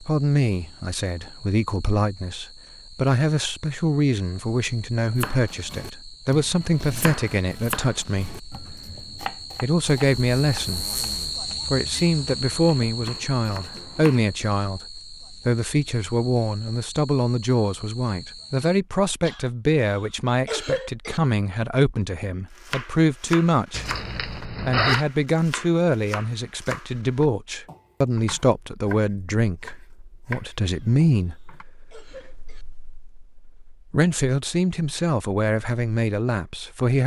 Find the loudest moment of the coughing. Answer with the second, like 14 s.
21 s.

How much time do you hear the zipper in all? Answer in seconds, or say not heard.
3 s.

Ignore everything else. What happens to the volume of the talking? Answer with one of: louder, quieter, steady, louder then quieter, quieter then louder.
steady.